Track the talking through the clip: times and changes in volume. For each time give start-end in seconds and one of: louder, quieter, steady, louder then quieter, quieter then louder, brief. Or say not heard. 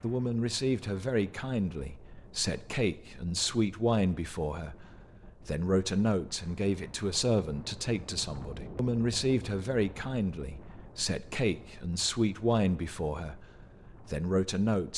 0.0-14.9 steady.